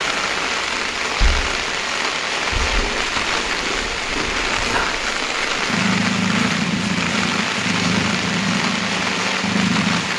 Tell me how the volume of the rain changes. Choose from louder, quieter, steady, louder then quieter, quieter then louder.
steady.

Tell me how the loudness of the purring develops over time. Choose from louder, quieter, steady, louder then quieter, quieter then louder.
louder.